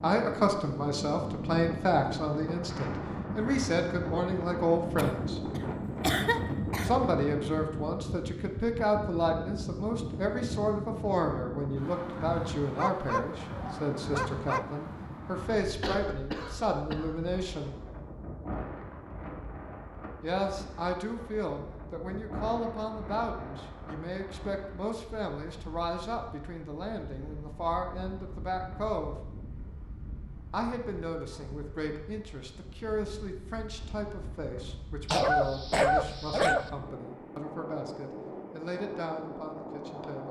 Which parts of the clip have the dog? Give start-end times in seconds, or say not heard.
12.8-14.7, 35.0-36.7.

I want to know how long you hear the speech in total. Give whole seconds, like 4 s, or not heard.
35 s.